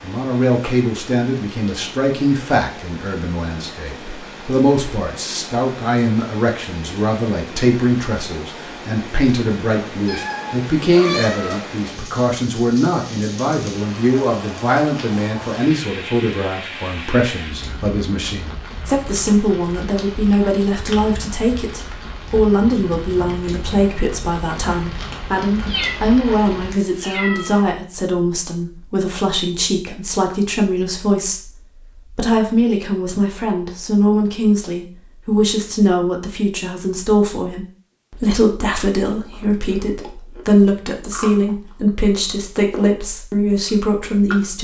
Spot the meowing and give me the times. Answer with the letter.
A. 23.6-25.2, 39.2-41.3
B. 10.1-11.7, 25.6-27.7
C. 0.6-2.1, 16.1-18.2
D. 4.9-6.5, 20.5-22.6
B.